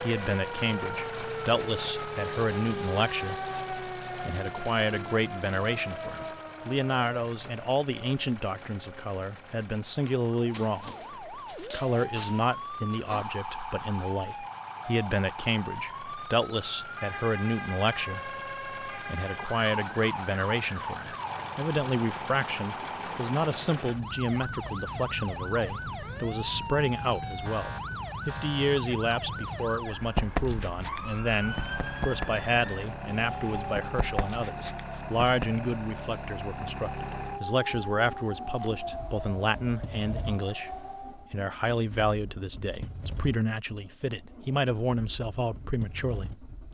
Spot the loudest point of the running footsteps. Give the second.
30 s.